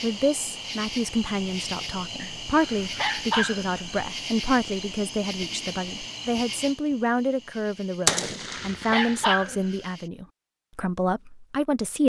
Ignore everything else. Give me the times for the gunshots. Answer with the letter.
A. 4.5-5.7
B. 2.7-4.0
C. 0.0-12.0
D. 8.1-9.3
D.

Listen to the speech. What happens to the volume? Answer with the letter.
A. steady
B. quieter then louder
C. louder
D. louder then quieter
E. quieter
A.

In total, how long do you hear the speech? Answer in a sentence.
The speech can be heard for 12 seconds in total.